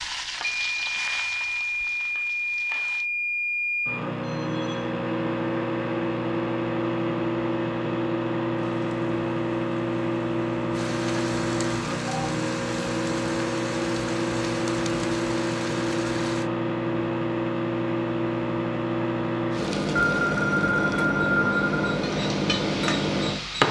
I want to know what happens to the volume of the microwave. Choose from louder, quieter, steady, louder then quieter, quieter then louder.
steady.